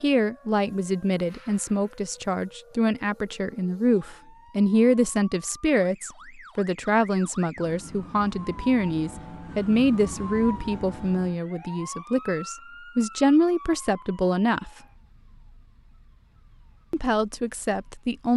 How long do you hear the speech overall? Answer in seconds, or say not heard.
16 s.